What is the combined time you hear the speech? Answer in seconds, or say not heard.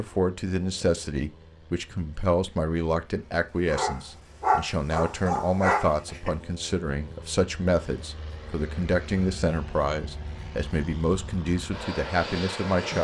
13 s.